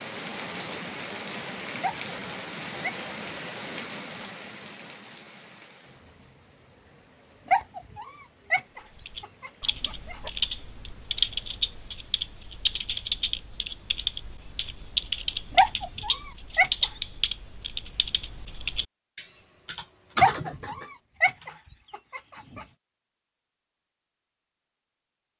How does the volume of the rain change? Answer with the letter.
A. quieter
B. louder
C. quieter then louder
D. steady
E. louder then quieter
A.